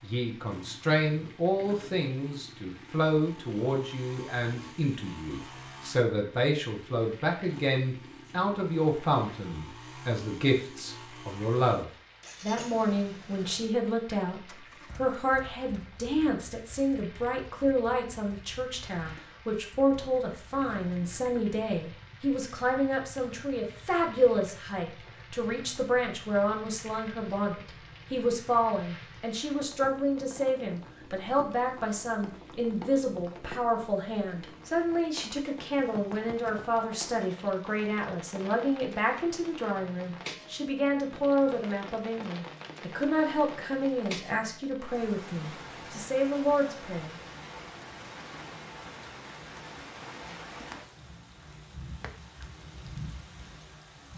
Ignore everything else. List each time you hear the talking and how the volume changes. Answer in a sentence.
The talking can be heard from 0.0 to 47.1 s, at a steady volume.